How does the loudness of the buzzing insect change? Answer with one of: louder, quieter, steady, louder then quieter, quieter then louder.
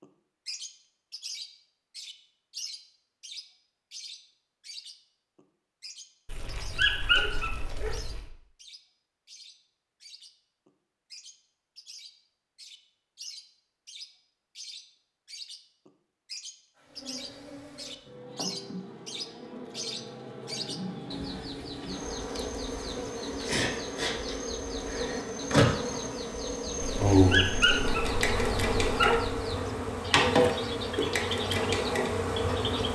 louder.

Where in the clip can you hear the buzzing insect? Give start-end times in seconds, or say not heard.
16.8-32.8.